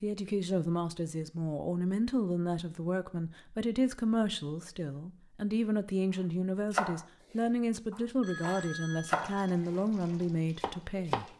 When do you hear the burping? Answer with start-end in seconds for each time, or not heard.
not heard.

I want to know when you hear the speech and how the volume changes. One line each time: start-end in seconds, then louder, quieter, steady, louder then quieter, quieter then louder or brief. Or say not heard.
0.0-11.2 steady.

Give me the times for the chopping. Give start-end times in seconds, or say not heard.
6.7-11.2.